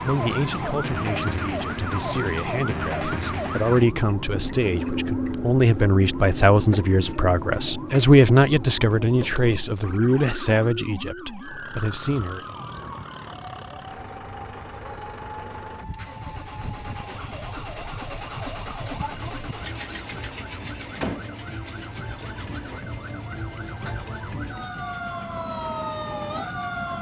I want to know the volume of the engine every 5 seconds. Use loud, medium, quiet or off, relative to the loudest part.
off, off, medium, loud, loud, medium.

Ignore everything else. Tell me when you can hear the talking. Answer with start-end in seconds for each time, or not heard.
0.0-12.6.